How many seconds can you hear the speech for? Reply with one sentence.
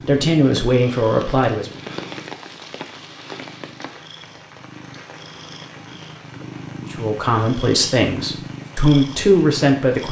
The speech can be heard for 5 seconds in total.